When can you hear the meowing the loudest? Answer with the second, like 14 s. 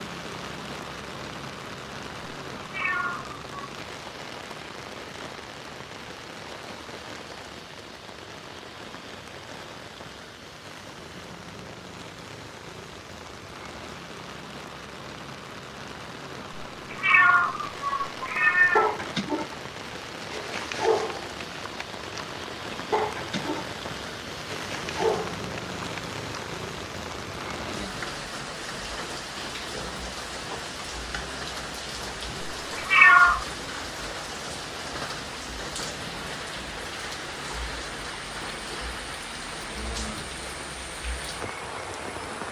33 s.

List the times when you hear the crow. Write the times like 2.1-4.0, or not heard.
not heard.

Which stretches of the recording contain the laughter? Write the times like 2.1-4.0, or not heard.
not heard.